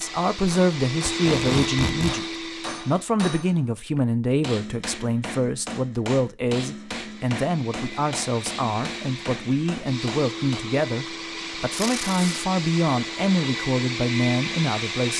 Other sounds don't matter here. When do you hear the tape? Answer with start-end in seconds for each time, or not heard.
1.1-2.2, 11.8-12.4.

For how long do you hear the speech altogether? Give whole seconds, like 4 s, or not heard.
15 s.